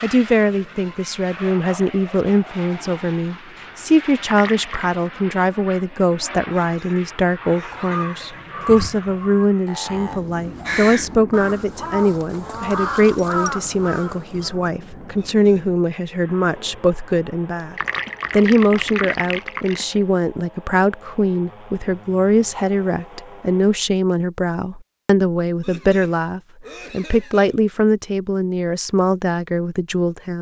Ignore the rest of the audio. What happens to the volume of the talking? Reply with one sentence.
The volume of the talking stays about the same.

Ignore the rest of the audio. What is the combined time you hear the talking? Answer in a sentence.
You can hear the talking for 30 seconds altogether.